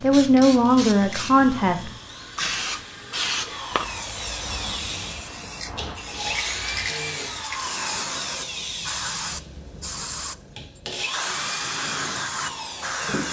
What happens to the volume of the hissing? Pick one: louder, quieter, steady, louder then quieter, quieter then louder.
steady.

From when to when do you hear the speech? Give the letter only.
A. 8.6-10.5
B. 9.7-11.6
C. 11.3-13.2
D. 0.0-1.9
D.